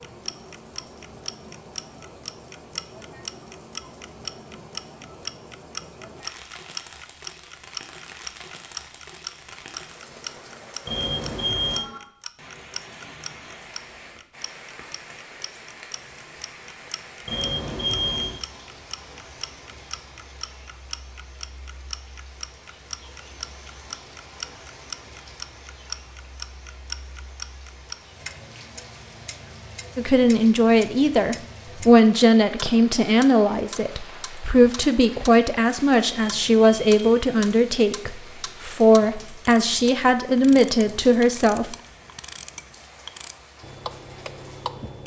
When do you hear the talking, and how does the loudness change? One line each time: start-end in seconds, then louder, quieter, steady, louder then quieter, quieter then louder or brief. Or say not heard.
29.9-41.8 steady.